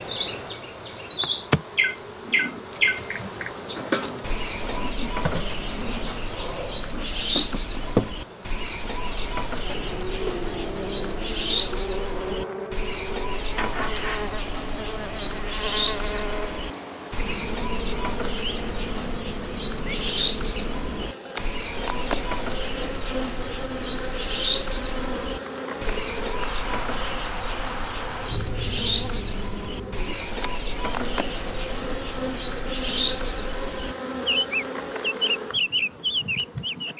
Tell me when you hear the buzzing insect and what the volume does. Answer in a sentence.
You can hear the buzzing insect from 0.0 to 36.9 s, at a steady volume.